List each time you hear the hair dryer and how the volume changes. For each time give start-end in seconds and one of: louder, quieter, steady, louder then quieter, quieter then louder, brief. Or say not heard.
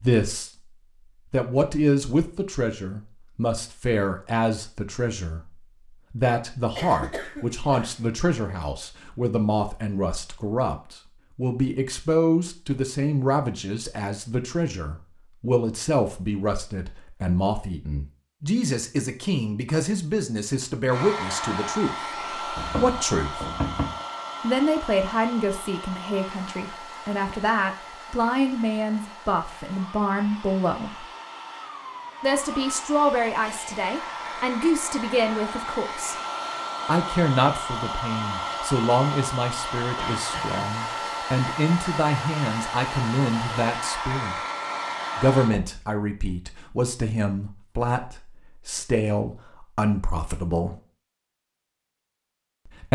20.9-45.5 quieter then louder.